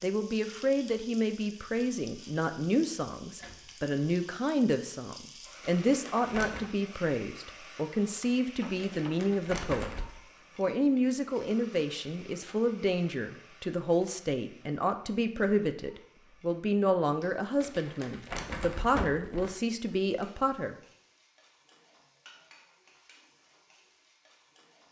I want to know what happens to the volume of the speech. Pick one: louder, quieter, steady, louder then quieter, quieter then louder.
steady.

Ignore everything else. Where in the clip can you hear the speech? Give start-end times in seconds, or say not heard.
0.0-9.9, 10.6-20.8.